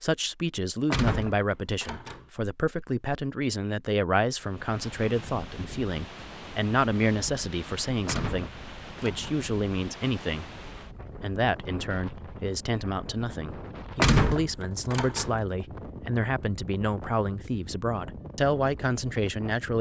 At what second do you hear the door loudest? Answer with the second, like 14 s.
14 s.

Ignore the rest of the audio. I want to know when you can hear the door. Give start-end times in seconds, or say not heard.
0.9-2.2, 8.1-9.4, 13.9-15.3.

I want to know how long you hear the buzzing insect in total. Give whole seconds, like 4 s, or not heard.
not heard.